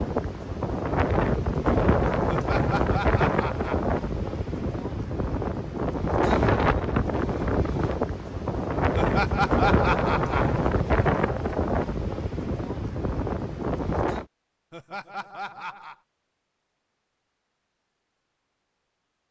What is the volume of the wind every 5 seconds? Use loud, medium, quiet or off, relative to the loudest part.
loud, loud, loud, off.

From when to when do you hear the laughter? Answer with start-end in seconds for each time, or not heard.
2.2-3.9, 8.9-10.6, 14.7-15.9.